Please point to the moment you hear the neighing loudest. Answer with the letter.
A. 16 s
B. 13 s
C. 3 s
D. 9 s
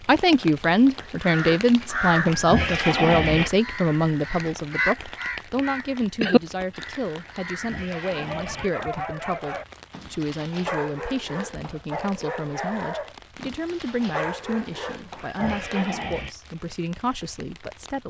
C.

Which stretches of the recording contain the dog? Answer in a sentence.
You can hear the dog from 8.1 to 15.9 s.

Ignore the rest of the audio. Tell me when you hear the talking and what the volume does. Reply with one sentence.
The talking can be heard from 0.1 to 18.0 s, getting quieter.